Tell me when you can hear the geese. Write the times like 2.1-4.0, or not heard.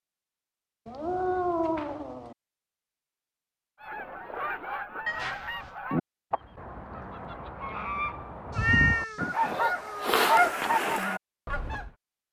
3.8-11.9.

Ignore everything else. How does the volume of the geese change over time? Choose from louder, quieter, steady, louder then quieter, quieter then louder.
louder.